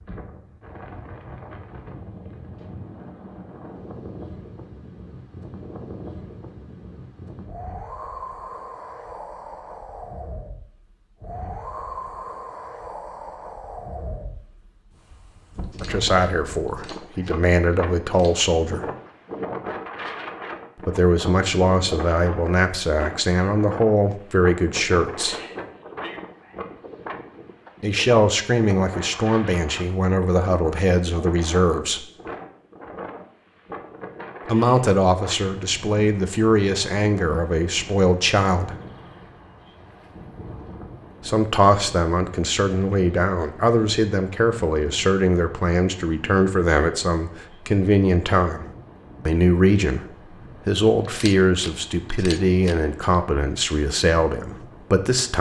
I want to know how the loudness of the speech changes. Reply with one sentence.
The loudness of the speech stays about the same.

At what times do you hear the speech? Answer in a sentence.
The speech can be heard from 15.8 to 18.9 s, from 20.8 to 25.4 s, from 27.8 to 32.0 s, from 34.5 to 38.8 s, from 41.2 to 48.6 s and from 49.2 to 55.3 s.